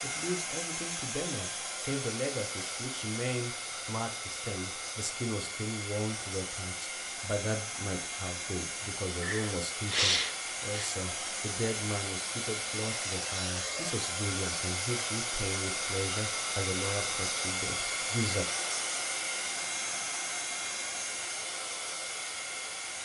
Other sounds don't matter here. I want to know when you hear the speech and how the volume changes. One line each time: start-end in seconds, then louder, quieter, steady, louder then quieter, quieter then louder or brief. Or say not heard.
0.0-18.4 steady.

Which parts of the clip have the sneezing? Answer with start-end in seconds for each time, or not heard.
9.2-10.9.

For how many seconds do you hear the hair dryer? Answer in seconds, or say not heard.
23 s.